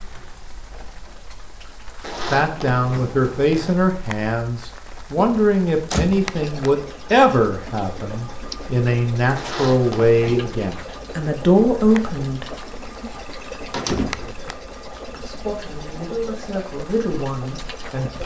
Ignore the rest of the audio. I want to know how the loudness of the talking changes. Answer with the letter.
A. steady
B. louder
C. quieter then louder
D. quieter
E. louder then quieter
D.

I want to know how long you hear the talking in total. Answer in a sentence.
You can hear the talking for 13 seconds altogether.